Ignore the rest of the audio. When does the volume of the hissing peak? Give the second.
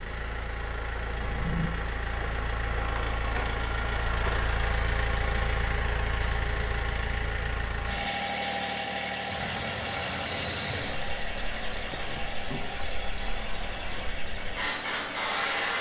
15 s.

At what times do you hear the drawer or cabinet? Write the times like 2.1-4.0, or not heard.
1.2-1.7, 11.9-12.8.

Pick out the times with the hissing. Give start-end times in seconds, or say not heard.
0.0-3.0, 9.2-15.7.